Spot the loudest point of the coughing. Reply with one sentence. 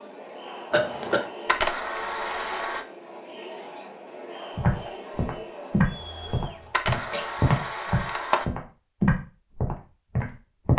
The loudest moment of the coughing is at 1 second.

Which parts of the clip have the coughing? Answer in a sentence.
You can hear the coughing from 0.7 to 1.2 s and from 6.6 to 7.3 s.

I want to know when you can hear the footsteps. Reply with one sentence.
The footsteps can be heard from 4.5 to 10.7 s.